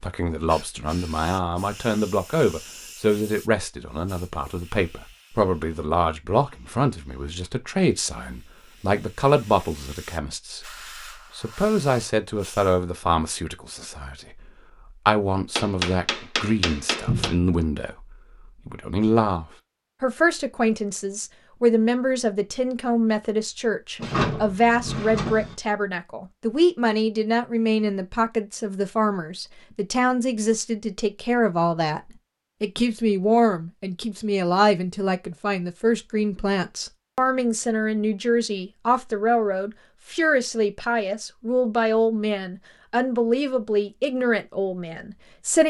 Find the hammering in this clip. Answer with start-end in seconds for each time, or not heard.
15.6-17.4.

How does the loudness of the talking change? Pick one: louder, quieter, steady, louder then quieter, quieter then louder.
steady.